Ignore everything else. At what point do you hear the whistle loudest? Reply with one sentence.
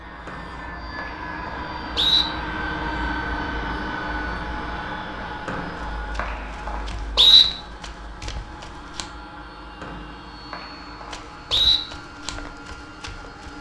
The volume of the whistle peaks at 7 seconds.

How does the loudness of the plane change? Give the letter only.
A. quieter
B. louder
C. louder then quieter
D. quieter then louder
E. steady
A.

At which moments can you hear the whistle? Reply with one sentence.
The whistle can be heard from 0.2 to 2.2 s, from 5.5 to 7.5 s and from 9.8 to 11.8 s.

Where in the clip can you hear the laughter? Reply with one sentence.
The laughter can't be heard in this clip.